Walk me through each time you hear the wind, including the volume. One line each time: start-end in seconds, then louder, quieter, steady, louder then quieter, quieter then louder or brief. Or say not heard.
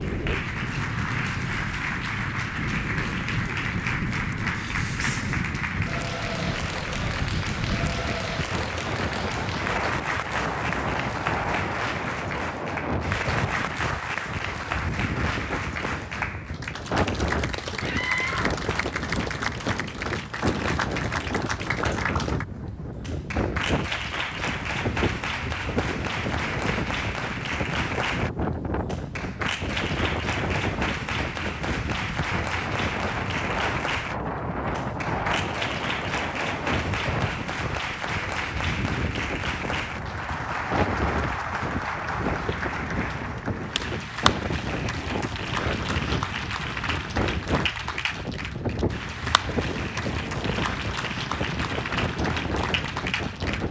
0.0-53.6 steady.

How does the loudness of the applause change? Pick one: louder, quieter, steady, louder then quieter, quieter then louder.
steady.